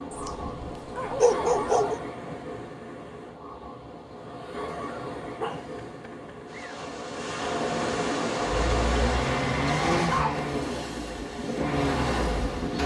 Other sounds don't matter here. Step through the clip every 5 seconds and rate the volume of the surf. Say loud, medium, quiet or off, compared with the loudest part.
medium, loud, loud.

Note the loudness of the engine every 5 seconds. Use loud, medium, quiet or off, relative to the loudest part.
off, loud, loud.